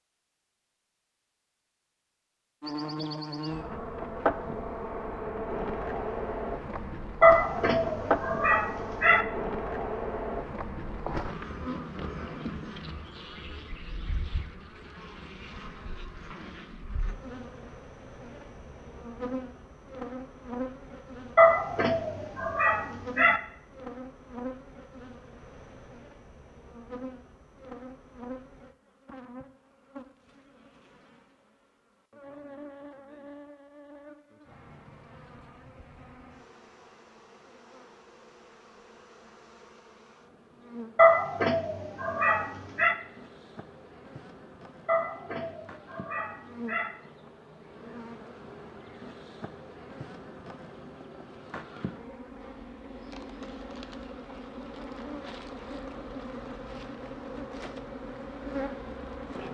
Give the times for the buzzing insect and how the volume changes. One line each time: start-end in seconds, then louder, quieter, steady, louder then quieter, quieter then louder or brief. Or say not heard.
2.6-59.4 quieter then louder.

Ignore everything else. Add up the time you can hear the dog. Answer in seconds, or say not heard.
8 s.